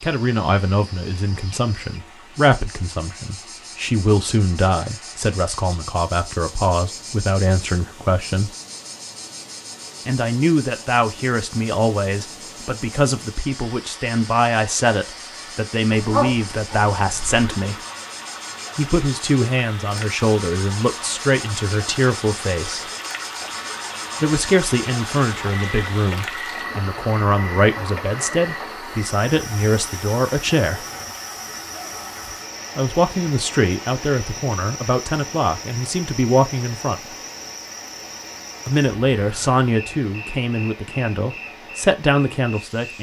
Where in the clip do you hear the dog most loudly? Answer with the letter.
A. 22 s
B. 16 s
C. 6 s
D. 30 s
B.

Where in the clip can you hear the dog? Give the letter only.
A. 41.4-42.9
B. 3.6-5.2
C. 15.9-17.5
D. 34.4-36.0
C.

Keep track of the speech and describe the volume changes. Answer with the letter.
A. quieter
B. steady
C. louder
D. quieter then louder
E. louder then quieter
B.